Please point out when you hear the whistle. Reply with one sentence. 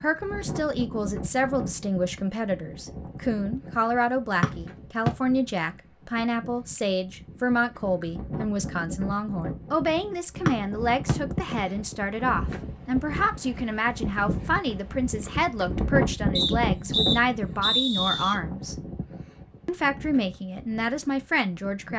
The whistle can be heard from 4.4 to 5.1 s, from 10.4 to 11.2 s and from 16.4 to 18.4 s.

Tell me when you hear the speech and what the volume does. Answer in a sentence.
You can hear the speech from 0.0 to 18.8 s, at a steady volume; and briefly from 19.6 to 21.9 s.